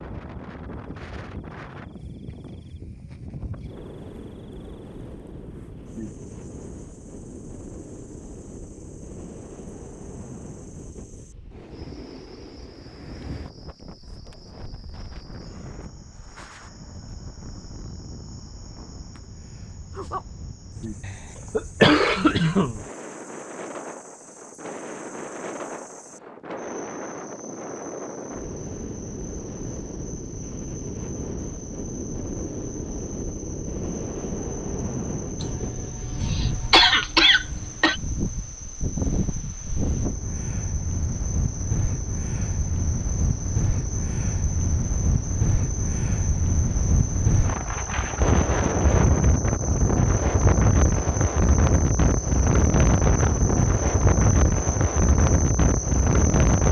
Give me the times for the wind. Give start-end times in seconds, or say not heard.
0.0-56.6.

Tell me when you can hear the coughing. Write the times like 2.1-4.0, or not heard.
21.1-22.8, 35.4-38.0.